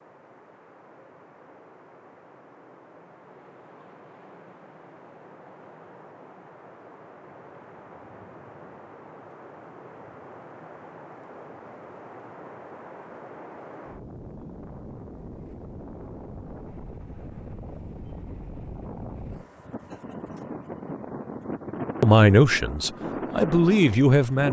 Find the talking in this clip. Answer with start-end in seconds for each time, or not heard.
22.0-24.4.